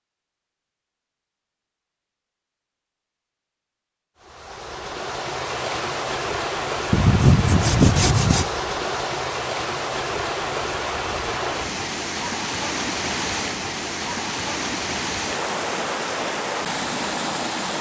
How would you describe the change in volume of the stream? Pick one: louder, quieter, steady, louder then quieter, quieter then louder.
steady.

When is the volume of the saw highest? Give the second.
7 s.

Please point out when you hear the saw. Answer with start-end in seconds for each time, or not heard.
6.9-8.5.